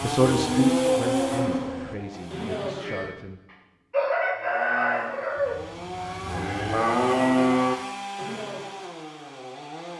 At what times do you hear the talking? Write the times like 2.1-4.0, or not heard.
0.0-3.4.